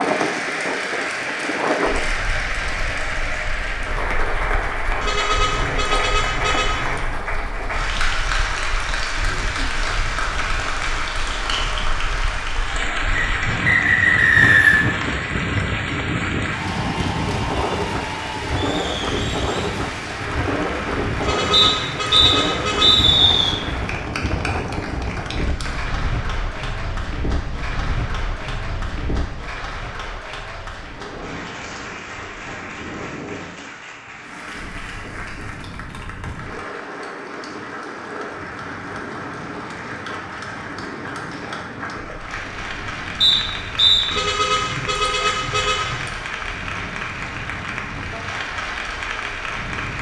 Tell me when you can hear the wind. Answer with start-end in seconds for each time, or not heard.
0.0-49.9.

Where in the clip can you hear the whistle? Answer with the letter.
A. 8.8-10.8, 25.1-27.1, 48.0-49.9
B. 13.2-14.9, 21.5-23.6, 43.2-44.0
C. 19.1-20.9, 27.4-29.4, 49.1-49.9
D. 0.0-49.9
B.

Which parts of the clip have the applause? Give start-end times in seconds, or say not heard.
0.0-49.9.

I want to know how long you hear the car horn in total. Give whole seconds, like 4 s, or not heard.
6 s.